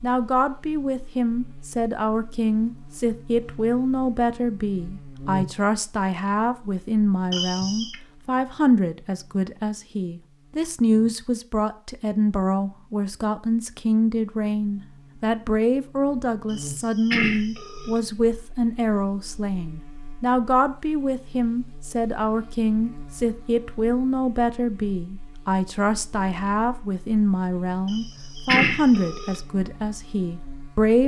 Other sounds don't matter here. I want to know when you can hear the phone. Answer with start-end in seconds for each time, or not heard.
7.3-8.0, 16.5-18.0, 27.9-29.4.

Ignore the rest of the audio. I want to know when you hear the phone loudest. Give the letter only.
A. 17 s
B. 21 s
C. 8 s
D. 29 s
D.